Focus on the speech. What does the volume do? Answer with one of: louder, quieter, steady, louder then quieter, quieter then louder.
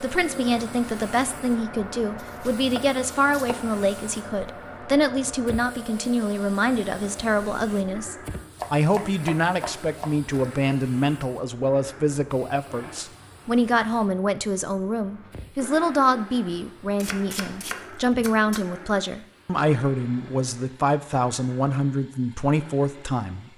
steady.